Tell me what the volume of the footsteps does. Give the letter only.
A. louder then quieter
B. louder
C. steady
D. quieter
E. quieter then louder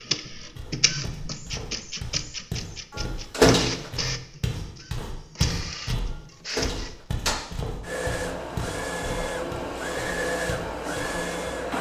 A.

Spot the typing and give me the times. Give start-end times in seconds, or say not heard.
not heard.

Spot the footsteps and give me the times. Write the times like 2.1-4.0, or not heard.
0.6-6.0, 6.6-11.5.